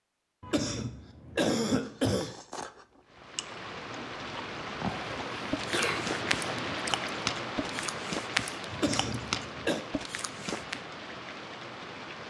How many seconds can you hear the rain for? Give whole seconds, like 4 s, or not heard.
9 s.